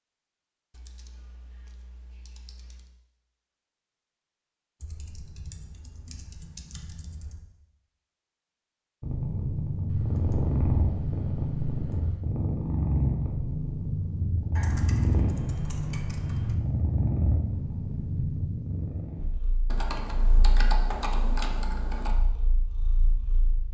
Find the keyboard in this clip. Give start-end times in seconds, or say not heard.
0.7-2.9, 4.8-7.4, 9.8-12.2, 14.6-16.6, 19.7-22.1.